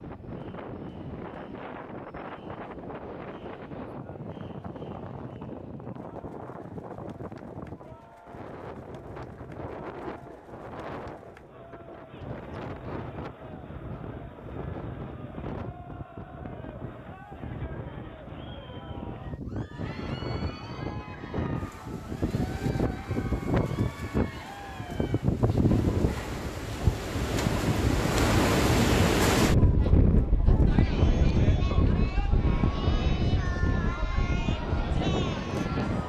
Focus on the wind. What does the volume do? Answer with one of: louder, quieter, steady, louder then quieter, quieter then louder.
louder.